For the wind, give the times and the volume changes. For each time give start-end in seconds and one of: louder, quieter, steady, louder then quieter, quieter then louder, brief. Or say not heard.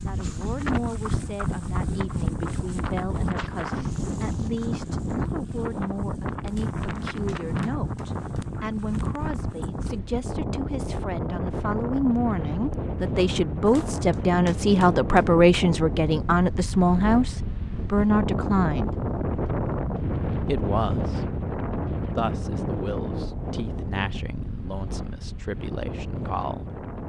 0.0-27.0 steady.